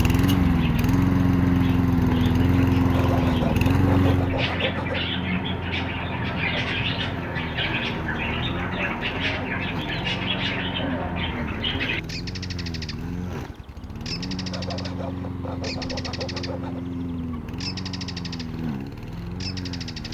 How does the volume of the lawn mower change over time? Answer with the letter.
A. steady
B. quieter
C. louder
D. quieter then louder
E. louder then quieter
B.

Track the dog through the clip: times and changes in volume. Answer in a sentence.
You can't hear the dog here.